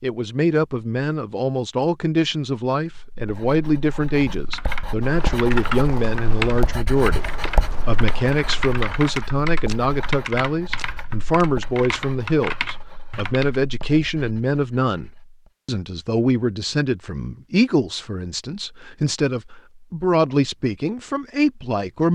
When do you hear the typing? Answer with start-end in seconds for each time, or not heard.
4.0-13.6.